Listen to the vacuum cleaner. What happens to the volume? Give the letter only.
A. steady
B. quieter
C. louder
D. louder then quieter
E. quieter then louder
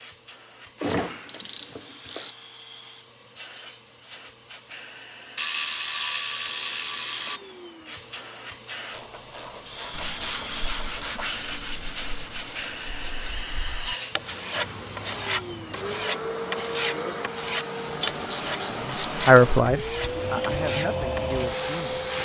C.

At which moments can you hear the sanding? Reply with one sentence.
You can hear the sanding from 9.9 to 21.4 s.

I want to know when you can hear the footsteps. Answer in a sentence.
You can't hear the footsteps here.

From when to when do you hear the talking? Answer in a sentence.
The talking can be heard from 18.6 to 22.0 s.